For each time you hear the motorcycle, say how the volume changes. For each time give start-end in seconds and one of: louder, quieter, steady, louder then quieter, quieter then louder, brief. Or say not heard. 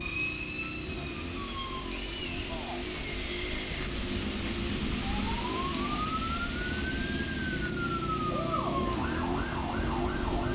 0.0-10.4 louder.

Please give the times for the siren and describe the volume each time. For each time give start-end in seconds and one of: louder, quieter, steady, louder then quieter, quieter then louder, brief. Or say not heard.
0.0-10.4 louder.